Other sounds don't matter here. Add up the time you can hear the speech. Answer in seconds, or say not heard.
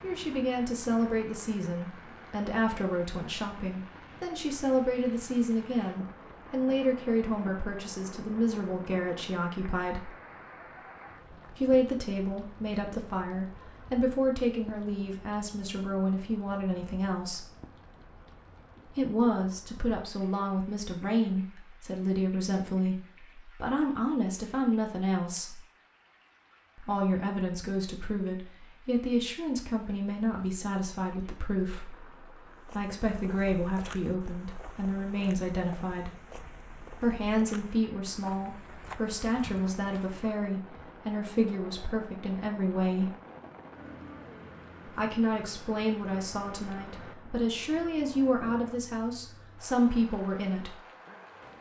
44 s.